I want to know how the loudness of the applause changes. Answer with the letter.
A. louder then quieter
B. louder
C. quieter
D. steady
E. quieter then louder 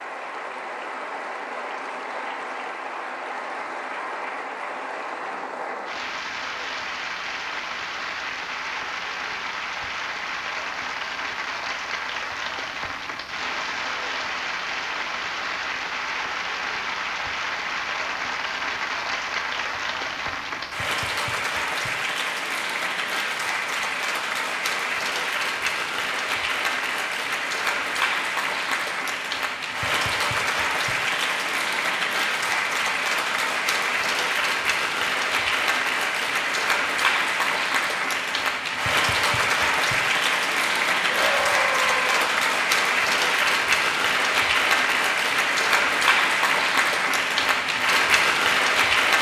B.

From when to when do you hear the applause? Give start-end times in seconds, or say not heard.
0.0-49.1.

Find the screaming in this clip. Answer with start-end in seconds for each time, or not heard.
41.0-42.2.